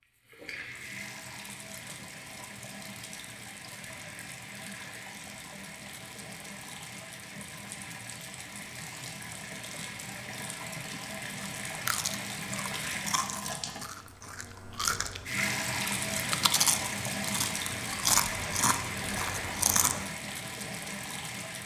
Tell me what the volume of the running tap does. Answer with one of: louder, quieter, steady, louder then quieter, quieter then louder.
louder.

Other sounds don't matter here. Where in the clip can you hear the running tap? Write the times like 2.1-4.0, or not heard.
0.0-21.6.